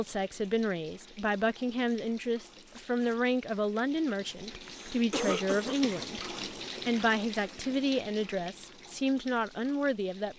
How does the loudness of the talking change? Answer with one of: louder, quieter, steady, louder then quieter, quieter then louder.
steady.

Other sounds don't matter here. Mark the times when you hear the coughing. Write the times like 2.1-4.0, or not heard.
4.6-6.0.